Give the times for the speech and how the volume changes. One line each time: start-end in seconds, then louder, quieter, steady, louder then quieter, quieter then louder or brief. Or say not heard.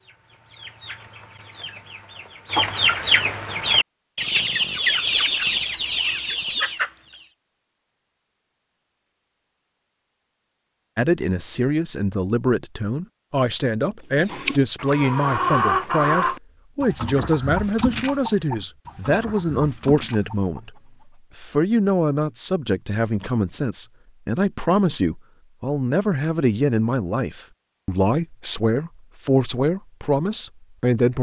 10.9-20.8 steady
21.4-31.1 steady.